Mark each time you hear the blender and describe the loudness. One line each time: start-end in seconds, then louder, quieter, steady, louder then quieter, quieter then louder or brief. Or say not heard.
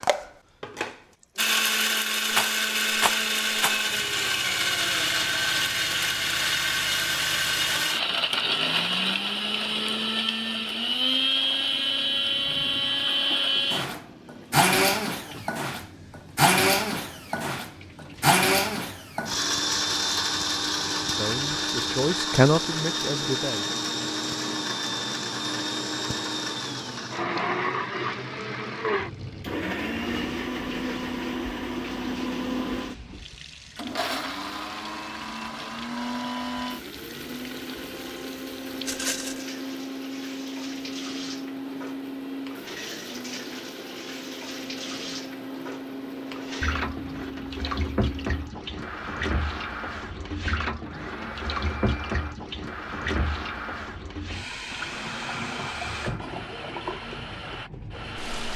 0.0-58.5 quieter.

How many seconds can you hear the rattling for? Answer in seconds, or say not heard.
2 s.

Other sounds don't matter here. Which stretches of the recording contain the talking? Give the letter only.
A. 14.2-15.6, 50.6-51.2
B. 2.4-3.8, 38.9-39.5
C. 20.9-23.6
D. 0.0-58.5
C.